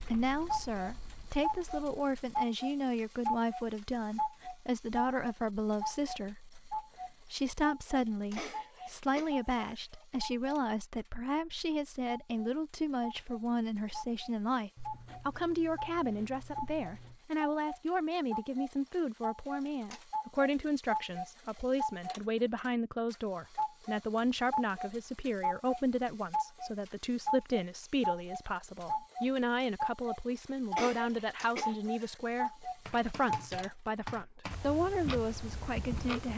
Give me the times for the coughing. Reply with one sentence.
The coughing can be heard from 8.3 to 10.1 s and from 30.7 to 32.1 s.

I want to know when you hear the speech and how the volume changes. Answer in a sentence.
You can hear the speech from 0.0 to 36.3 s, at a steady volume.